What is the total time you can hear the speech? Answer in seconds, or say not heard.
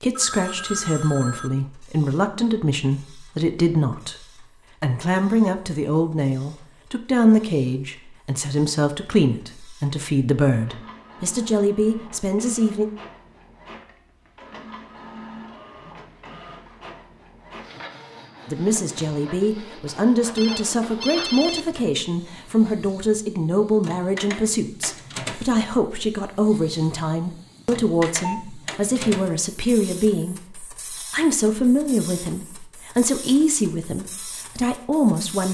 30 s.